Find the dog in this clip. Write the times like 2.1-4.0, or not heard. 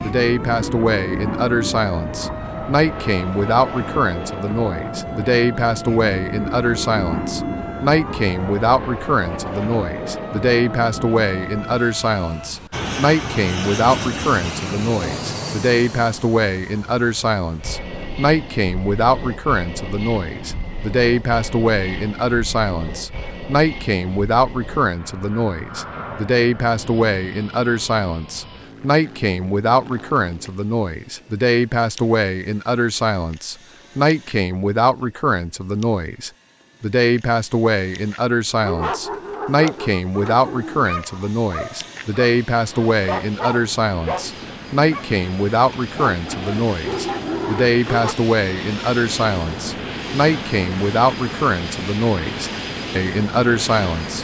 38.5-48.1.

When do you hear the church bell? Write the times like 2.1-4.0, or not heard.
not heard.